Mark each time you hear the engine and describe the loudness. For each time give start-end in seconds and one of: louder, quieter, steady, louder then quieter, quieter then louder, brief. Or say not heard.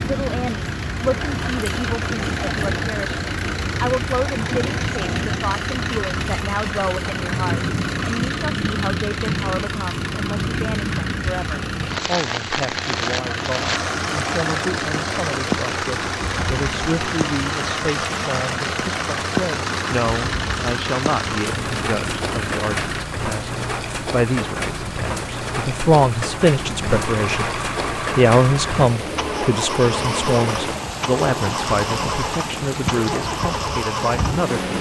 0.0-23.1 steady
26.5-34.7 steady.